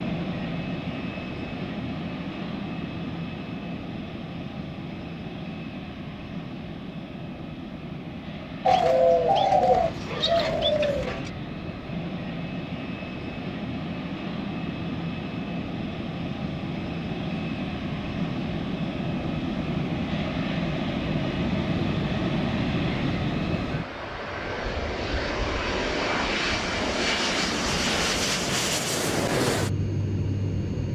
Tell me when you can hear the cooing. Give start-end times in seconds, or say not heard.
8.7-11.3.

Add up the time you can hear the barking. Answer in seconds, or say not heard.
not heard.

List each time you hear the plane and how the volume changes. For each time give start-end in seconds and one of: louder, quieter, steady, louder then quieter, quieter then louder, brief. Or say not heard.
0.0-30.9 louder.